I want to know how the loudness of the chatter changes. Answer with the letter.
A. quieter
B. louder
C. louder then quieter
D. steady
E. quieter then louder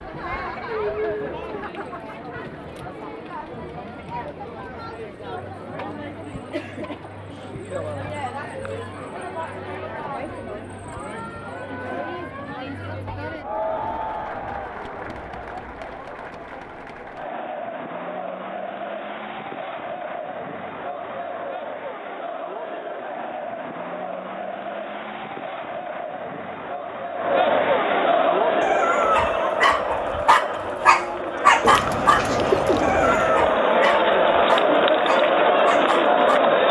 B.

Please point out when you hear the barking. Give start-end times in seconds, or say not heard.
28.6-36.4.